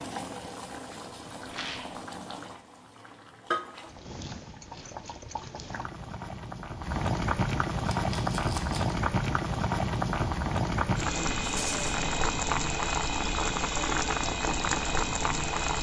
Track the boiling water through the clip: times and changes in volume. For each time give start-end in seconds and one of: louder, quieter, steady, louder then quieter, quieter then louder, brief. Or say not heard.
0.0-15.7 louder.